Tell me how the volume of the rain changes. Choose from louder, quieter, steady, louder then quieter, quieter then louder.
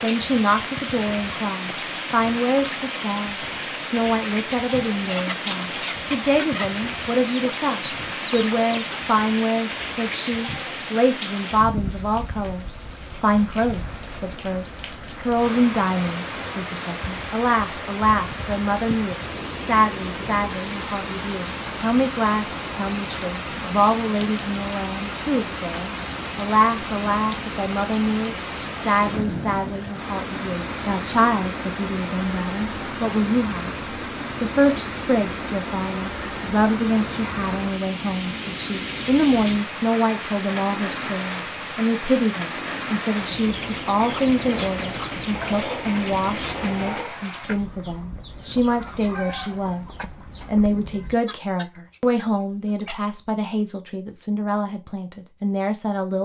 steady.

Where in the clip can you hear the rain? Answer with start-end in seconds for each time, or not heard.
0.0-47.6.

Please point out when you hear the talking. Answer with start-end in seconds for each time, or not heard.
0.0-33.7, 34.4-56.2.